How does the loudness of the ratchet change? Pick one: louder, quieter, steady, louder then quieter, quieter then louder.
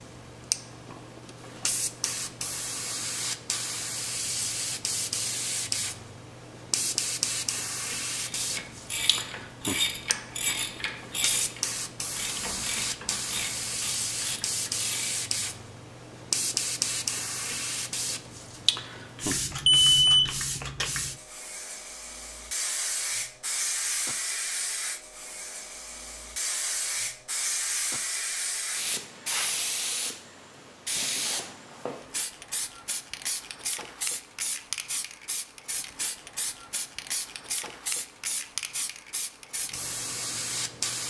quieter.